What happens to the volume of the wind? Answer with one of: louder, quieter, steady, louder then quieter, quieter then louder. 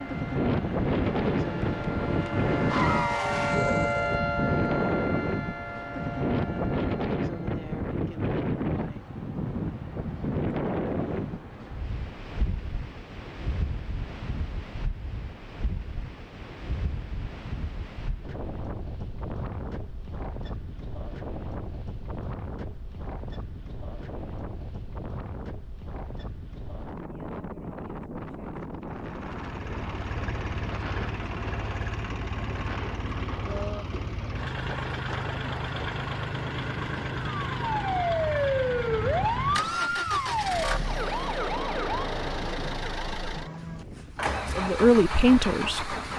quieter.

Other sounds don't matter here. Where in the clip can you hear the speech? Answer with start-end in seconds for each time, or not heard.
44.5-46.0.